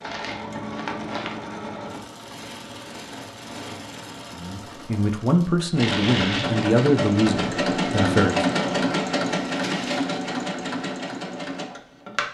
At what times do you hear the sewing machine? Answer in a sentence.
The sewing machine can be heard from 0.0 to 12.2 s.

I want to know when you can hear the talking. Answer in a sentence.
The talking can be heard from 4.3 to 8.4 s.